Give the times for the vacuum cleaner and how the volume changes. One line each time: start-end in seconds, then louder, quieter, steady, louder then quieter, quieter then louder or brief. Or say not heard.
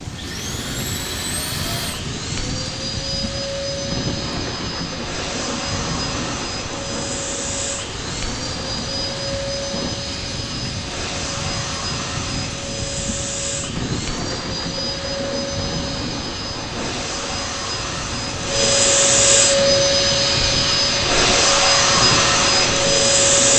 0.0-23.5 louder.